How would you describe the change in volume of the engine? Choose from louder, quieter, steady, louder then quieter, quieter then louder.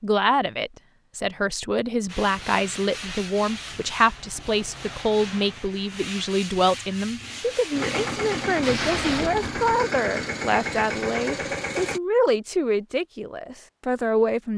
steady.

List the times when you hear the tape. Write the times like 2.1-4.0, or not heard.
8.6-9.7.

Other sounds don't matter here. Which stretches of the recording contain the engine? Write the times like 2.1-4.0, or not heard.
7.7-12.0.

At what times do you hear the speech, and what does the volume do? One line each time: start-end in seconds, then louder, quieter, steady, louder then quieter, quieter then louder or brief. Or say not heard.
0.0-14.5 steady.